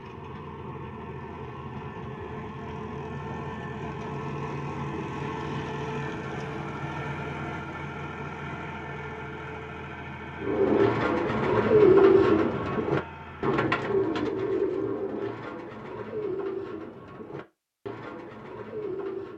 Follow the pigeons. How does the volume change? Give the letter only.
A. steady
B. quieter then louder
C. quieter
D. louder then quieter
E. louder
C.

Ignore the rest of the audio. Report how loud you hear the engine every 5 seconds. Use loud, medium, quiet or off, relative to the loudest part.
loud, loud, medium, off.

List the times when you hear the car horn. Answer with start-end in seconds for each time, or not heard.
not heard.